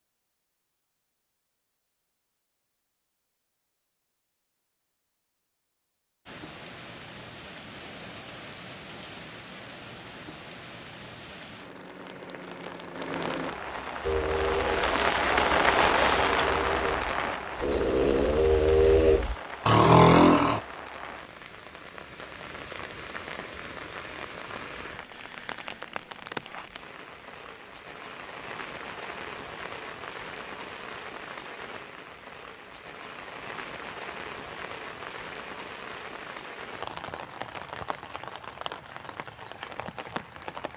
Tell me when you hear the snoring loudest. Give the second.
20 s.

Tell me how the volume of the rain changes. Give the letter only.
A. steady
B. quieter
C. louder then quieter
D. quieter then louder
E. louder
C.